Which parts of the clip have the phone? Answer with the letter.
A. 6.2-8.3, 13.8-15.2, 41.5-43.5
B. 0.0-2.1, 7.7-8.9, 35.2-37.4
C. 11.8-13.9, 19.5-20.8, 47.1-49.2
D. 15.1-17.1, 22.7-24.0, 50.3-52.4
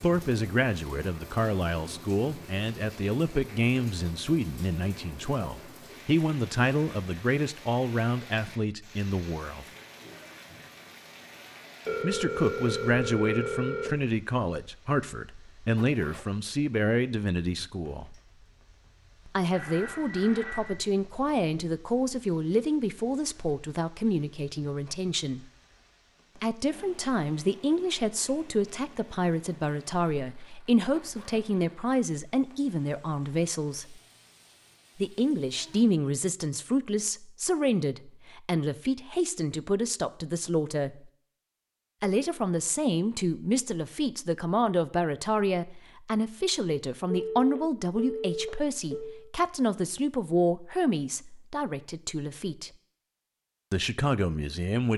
C.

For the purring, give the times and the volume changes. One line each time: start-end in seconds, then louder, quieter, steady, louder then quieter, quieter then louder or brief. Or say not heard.
not heard.